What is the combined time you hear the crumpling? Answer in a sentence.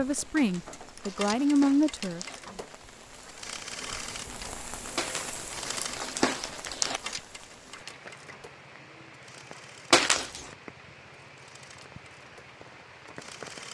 The crumpling can be heard for 5 seconds in total.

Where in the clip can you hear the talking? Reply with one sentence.
You can hear the talking from 0.0 to 2.2 s.